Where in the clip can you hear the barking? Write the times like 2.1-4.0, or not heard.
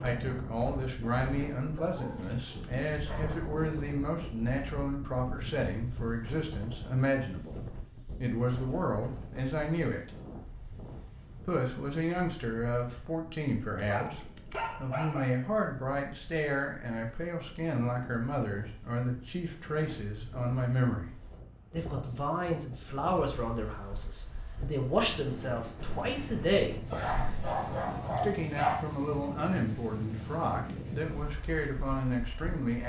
1.8-3.4, 13.8-15.3, 26.9-28.8.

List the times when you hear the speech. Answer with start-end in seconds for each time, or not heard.
0.0-7.6, 8.2-10.1, 11.4-26.8, 28.2-32.8.